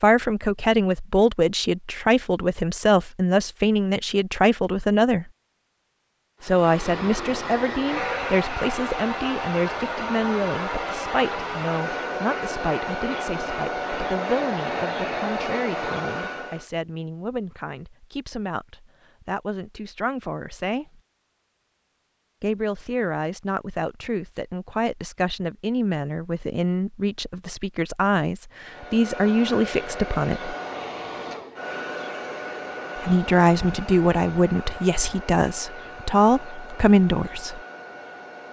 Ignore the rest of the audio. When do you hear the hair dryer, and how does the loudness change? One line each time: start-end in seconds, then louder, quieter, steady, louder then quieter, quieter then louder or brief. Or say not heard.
6.4-16.6 steady
28.6-38.4 quieter.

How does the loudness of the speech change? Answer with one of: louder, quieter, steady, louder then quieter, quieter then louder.
quieter then louder.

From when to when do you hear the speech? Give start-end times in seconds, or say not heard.
0.0-5.3, 6.4-21.0, 22.4-30.6, 33.0-37.6.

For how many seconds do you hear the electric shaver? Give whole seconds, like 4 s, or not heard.
not heard.